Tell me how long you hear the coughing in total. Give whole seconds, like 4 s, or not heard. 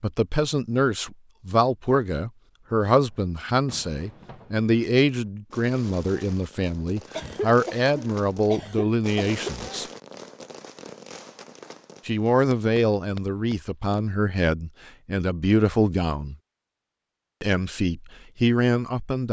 2 s.